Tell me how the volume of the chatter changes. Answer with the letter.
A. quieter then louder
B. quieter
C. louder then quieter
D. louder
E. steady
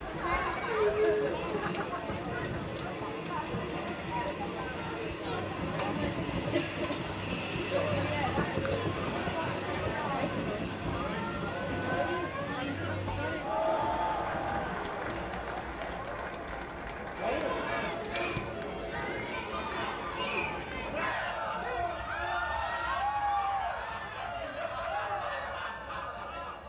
E.